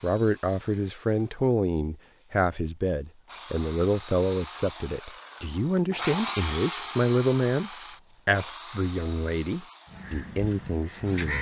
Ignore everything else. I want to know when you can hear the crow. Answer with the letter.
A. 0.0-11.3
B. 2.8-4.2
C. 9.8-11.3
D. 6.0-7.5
C.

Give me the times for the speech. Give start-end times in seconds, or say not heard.
0.0-11.3.